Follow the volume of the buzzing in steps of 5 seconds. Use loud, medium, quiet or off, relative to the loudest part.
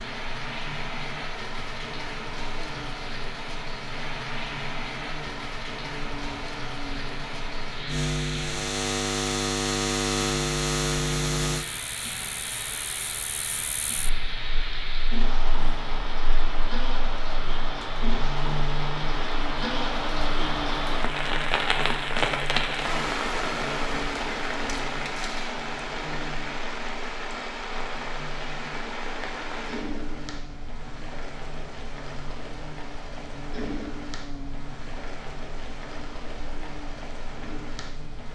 quiet, loud, loud, medium, medium, quiet, quiet, quiet.